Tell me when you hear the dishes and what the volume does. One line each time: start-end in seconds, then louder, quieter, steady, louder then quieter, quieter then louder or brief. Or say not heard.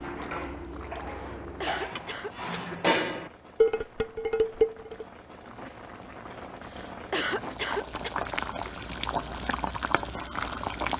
0.0-5.0 louder.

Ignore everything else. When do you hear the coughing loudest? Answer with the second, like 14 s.
7 s.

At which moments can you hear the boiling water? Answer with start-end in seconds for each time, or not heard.
0.0-10.9.